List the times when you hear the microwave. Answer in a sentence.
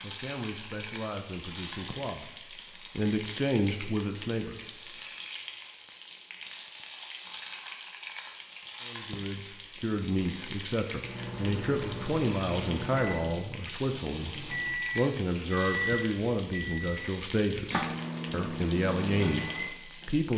The microwave can be heard from 10.9 to 20.1 s.